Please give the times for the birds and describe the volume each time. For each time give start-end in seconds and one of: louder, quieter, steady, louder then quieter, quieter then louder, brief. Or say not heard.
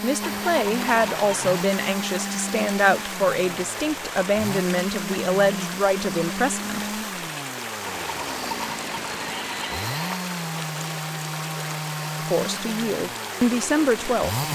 not heard.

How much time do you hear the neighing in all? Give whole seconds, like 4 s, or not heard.
4 s.